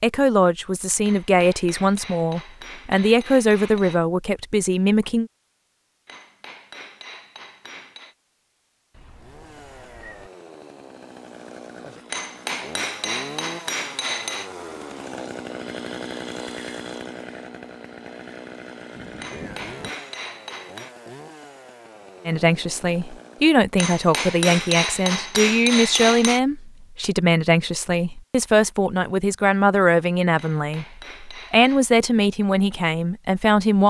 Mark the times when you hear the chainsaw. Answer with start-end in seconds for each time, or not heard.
9.2-23.6.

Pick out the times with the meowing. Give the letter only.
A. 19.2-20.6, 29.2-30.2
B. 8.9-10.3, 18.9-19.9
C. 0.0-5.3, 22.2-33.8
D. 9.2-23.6
B.